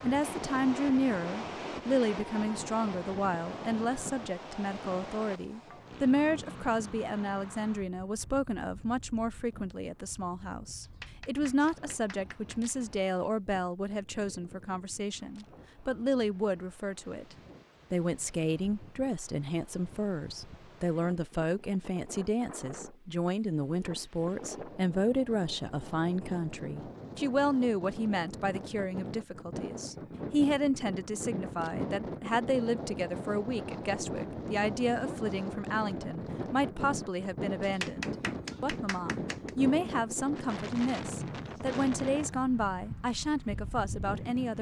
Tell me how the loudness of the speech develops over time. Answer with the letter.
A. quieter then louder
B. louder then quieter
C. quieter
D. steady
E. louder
D.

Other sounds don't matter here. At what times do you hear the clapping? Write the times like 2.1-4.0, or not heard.
10.8-12.8, 37.6-39.6.